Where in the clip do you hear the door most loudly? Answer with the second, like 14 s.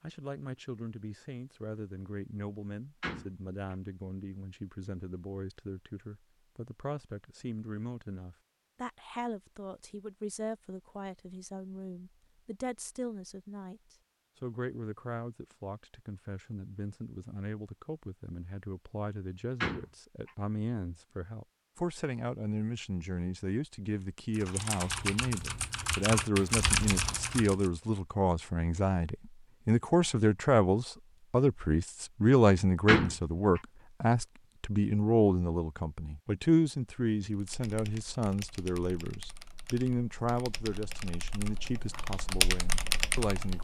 33 s.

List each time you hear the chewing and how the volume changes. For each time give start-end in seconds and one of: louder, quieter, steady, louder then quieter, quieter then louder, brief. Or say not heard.
not heard.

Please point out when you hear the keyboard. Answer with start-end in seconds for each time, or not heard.
24.3-27.7, 37.3-43.5.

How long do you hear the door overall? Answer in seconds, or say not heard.
2 s.